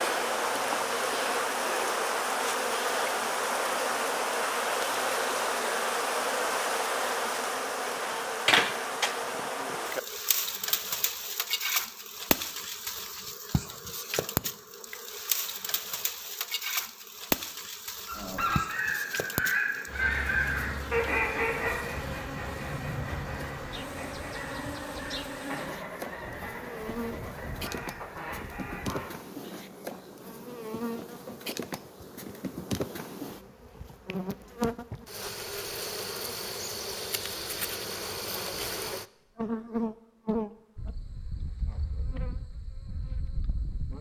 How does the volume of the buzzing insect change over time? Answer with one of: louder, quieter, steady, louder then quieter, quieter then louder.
quieter.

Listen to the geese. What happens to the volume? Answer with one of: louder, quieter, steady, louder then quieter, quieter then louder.
quieter.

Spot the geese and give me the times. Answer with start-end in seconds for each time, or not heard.
18.1-29.1.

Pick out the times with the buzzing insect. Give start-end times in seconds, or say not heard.
0.0-43.9.